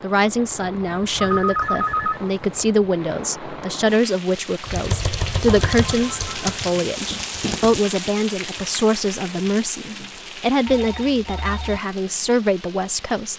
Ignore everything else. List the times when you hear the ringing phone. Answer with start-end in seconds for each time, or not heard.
1.2-2.6, 5.5-6.4, 10.7-11.8.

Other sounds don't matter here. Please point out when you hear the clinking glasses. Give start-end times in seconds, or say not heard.
not heard.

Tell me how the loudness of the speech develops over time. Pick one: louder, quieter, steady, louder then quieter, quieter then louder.
steady.